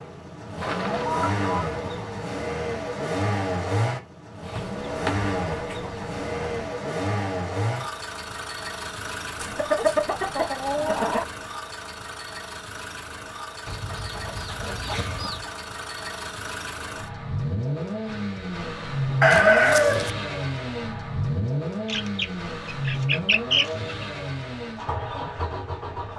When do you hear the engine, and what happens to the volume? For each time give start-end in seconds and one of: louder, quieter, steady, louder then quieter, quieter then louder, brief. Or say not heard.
0.0-26.1 quieter then louder.